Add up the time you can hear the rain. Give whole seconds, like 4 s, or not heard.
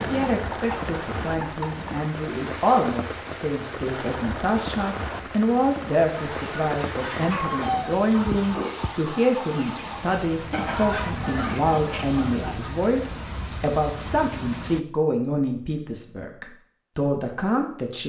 15 s.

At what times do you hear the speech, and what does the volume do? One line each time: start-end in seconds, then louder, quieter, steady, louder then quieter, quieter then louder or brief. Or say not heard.
0.1-18.0 steady.